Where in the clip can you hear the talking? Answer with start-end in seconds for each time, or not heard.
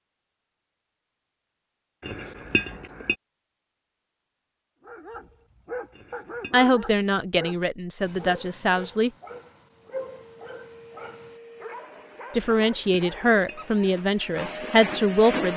6.5-9.1, 12.3-15.5.